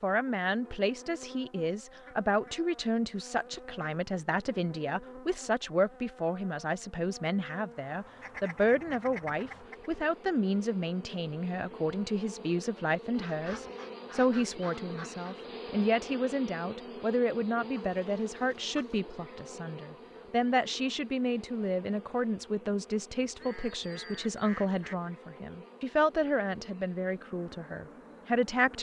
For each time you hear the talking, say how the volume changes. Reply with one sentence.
The talking can be heard from 0.0 to 28.7 s, at a steady volume.